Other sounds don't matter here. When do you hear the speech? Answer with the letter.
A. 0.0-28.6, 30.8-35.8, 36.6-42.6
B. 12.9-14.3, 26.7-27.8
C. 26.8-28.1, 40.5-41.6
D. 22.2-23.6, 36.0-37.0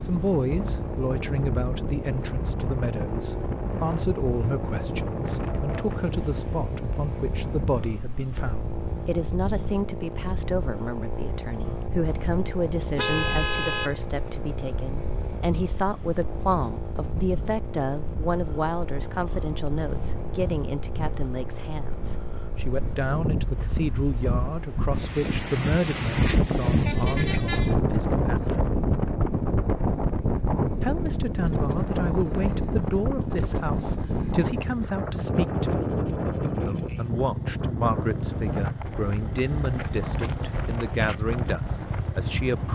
A.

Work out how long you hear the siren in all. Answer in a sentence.
You can't hear the siren here.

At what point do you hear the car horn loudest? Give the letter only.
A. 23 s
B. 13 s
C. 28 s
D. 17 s
B.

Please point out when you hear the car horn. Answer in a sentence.
The car horn can be heard from 12.9 to 14.3 s and from 26.7 to 27.8 s.